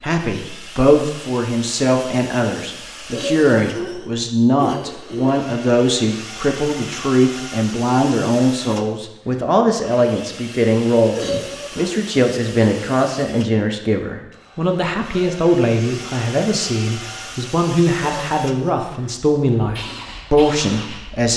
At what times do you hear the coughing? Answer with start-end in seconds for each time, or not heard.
3.1-5.3, 11.2-11.9, 18.0-18.9.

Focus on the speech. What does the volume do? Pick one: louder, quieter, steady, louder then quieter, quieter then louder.
steady.